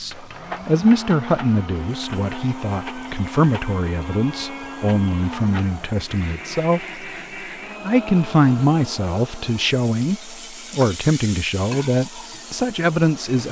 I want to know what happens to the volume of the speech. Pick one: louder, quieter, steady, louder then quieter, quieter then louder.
steady.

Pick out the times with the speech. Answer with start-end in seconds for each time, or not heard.
0.0-7.0, 7.8-13.4.